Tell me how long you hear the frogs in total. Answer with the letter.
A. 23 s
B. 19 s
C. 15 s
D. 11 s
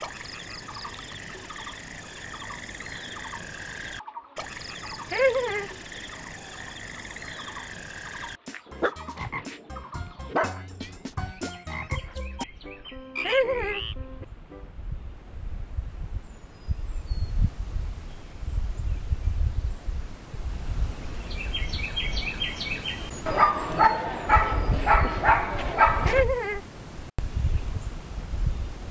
C.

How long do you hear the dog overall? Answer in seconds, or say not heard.
5 s.